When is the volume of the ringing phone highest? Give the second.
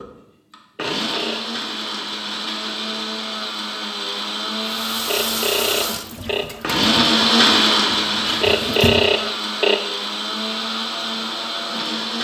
9 s.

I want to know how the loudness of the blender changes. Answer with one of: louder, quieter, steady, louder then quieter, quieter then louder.
louder then quieter.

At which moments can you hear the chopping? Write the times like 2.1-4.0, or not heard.
not heard.